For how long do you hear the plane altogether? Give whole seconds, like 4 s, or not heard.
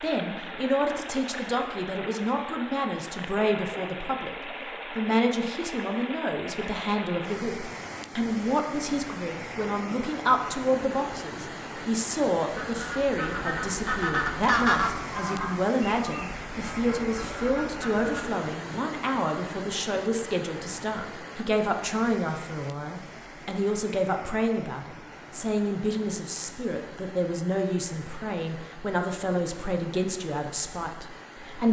not heard.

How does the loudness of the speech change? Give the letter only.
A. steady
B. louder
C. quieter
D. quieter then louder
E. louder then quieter
A.